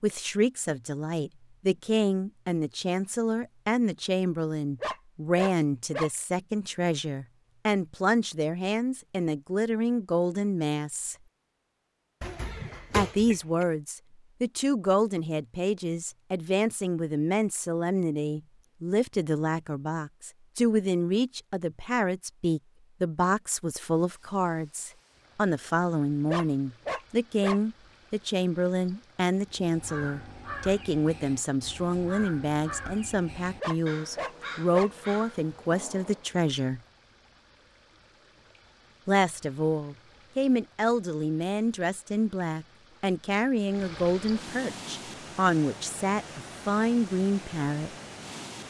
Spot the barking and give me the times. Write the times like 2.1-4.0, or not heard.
4.8-6.1, 26.2-27.6, 33.6-34.9.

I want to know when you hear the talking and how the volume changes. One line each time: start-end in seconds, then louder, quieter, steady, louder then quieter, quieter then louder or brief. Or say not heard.
0.0-11.2 steady
12.9-36.8 steady
39.0-47.9 steady.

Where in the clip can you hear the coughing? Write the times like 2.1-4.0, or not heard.
12.2-13.7.